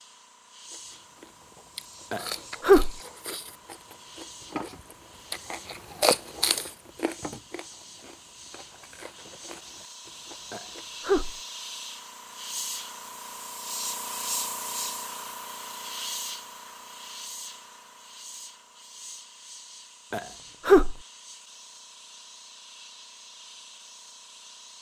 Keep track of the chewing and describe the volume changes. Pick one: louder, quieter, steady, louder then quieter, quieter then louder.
louder then quieter.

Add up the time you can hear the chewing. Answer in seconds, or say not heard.
10 s.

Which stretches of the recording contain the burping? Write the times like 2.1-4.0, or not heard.
2.1-2.9, 10.5-11.3, 20.1-20.9.